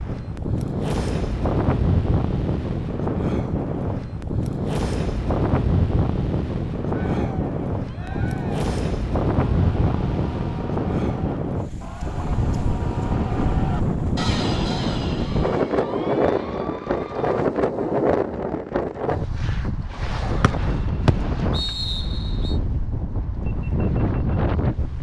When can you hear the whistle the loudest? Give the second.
21 s.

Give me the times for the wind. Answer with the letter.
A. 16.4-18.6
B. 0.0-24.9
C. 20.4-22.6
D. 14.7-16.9
B.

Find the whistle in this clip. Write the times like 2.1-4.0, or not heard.
20.4-22.6.